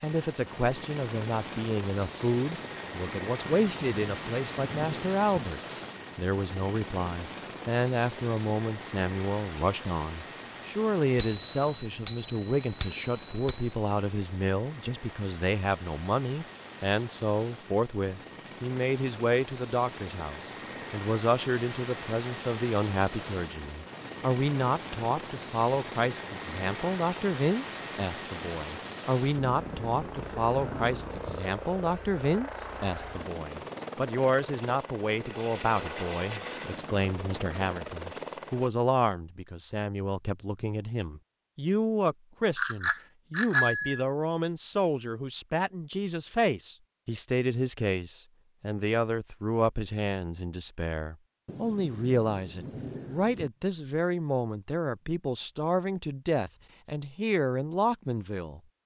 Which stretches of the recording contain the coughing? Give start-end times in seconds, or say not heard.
not heard.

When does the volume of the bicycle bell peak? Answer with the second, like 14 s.
44 s.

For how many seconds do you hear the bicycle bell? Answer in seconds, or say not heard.
4 s.